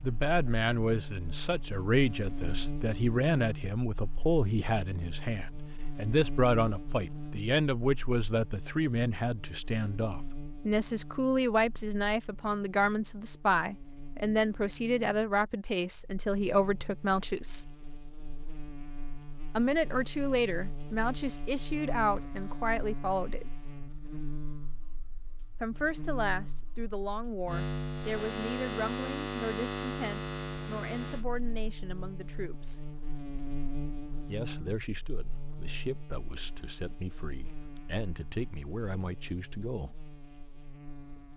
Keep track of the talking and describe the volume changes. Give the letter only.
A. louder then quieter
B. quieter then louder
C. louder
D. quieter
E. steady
D.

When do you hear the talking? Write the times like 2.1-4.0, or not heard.
0.0-17.6, 19.6-23.5, 25.6-32.8, 34.2-40.0.